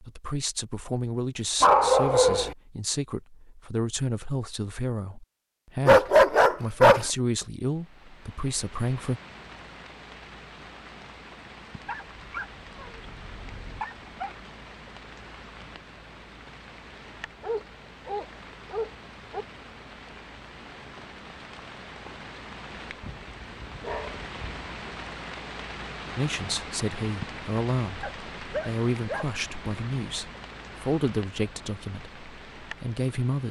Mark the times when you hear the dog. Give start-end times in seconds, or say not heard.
1.6-2.5, 5.8-7.1, 11.8-14.3, 17.4-19.4, 23.0-24.8, 28.0-29.3.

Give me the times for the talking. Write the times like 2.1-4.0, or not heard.
0.0-9.2, 26.1-33.4.